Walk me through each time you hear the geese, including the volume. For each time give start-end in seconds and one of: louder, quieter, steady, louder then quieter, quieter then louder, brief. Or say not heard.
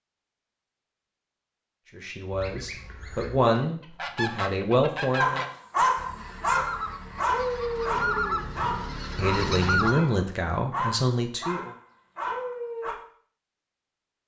2.3-9.9 louder.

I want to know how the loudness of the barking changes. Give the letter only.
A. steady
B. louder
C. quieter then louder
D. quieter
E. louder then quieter
D.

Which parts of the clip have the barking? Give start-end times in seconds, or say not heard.
5.0-12.9.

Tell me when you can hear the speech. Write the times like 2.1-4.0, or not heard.
1.9-5.5, 9.2-11.7.